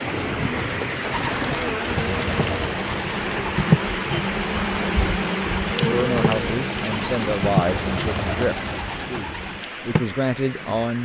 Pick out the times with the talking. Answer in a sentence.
You can hear the talking from 5.8 to 11.0 s.